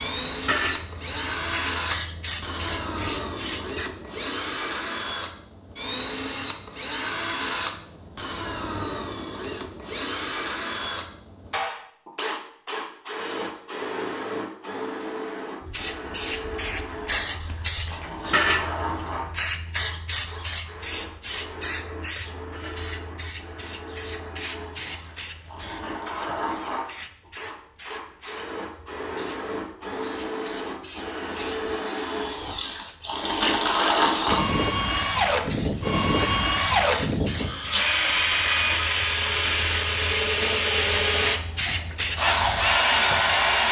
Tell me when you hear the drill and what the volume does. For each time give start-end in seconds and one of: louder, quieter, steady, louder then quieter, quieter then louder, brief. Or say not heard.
0.0-43.6 quieter then louder.